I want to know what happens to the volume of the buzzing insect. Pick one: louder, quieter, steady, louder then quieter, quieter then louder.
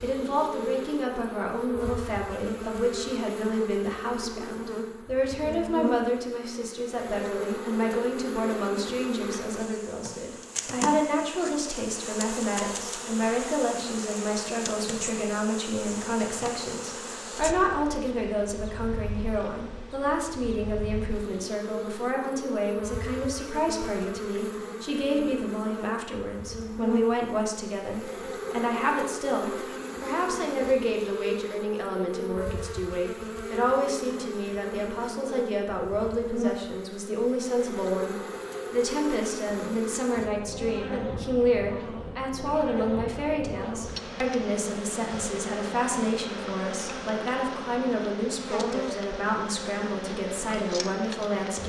steady.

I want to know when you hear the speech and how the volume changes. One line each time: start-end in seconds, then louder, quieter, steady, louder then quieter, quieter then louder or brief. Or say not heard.
0.0-51.6 steady.